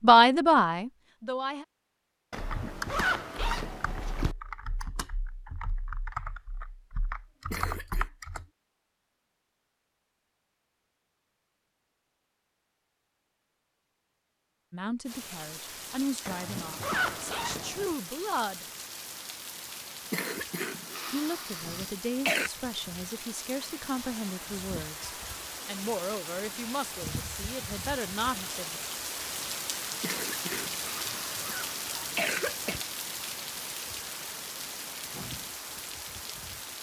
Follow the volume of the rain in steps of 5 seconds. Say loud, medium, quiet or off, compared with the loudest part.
off, off, off, medium, medium, loud, loud, loud.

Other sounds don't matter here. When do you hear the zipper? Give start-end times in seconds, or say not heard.
2.3-4.3, 16.2-17.9, 31.1-32.9.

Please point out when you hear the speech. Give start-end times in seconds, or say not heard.
0.0-1.6, 14.7-18.6, 21.1-28.9.